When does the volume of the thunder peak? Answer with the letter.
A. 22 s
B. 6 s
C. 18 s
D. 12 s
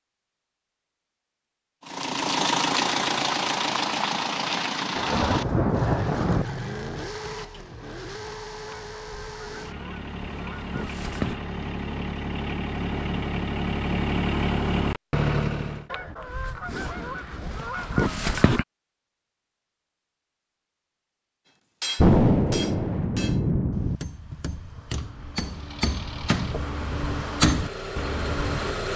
A.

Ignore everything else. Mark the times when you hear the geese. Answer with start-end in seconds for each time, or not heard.
8.7-11.4, 15.9-18.6.